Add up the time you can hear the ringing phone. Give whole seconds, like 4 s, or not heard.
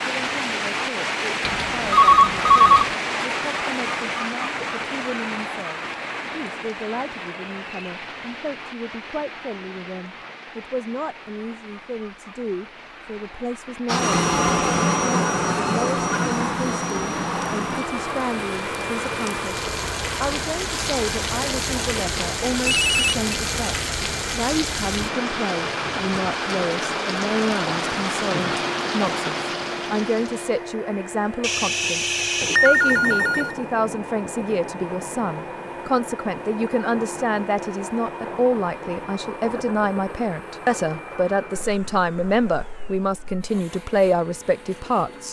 4 s.